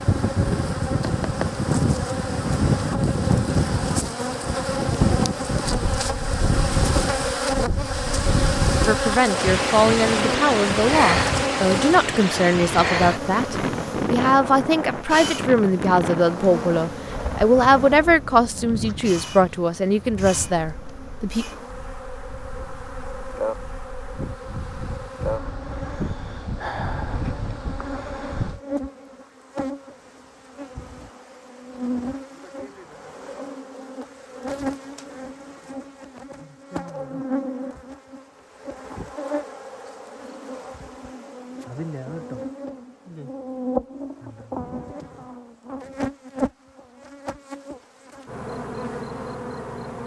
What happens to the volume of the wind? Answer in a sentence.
The volume of the wind goes down.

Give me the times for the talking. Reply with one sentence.
You can hear the talking from 8.8 to 21.4 s.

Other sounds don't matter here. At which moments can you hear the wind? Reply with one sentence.
The wind can be heard from 0.0 to 28.6 s.